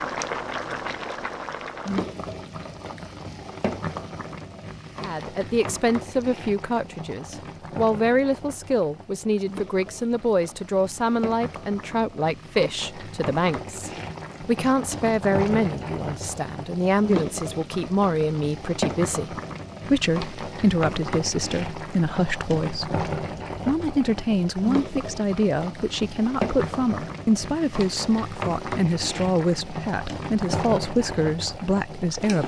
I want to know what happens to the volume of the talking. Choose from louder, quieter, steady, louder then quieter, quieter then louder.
steady.